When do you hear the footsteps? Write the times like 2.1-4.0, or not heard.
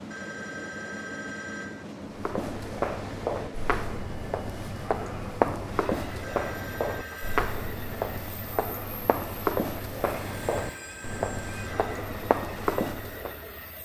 2.0-13.4.